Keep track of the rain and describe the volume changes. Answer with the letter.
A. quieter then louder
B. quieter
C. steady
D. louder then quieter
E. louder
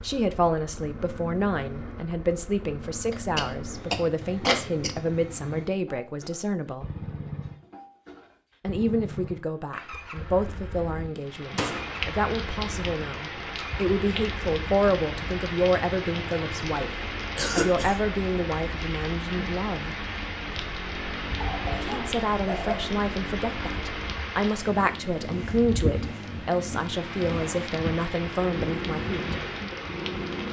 C.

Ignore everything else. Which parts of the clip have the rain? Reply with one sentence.
You can hear the rain from 11.2 to 30.4 s.